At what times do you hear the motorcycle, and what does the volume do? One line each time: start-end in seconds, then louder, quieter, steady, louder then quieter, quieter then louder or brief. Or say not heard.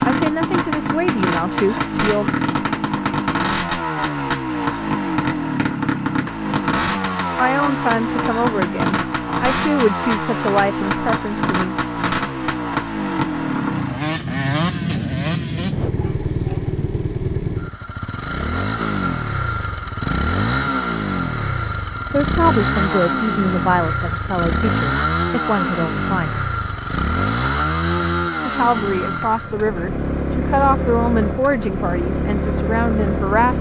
0.0-33.5 steady.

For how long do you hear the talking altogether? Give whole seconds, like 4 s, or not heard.
16 s.